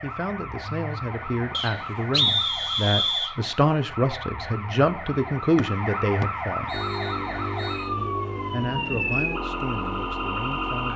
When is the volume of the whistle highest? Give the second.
2 s.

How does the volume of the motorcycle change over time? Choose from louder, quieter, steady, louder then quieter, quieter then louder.
steady.